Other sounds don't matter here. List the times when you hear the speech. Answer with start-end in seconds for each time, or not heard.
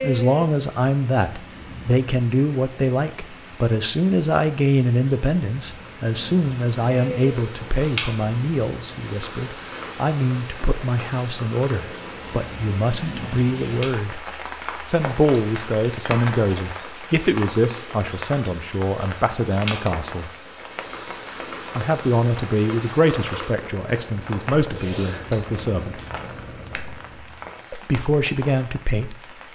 0.0-14.2, 14.8-20.3, 21.8-25.9, 27.7-29.5.